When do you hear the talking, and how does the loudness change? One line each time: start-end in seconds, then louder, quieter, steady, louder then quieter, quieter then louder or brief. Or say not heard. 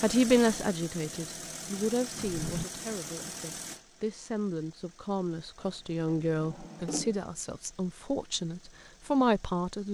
0.0-9.9 quieter then louder.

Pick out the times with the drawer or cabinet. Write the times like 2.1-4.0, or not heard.
2.1-2.6, 5.6-7.2.